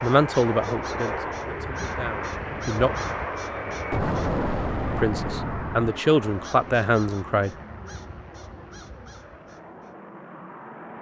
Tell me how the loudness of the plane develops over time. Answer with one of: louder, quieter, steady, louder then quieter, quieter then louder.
quieter.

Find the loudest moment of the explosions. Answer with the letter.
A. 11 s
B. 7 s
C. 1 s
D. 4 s
D.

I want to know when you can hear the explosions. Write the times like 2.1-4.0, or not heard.
3.9-6.0.